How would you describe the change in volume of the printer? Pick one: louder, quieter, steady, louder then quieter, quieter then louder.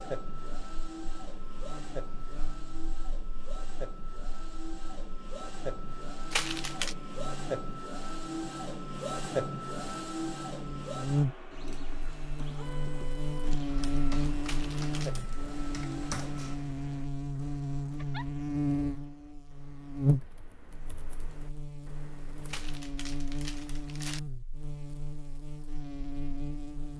louder then quieter.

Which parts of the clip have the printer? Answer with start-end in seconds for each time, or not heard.
0.0-16.6.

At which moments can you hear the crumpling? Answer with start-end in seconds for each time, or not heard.
6.3-7.0, 14.4-15.2, 22.4-24.2.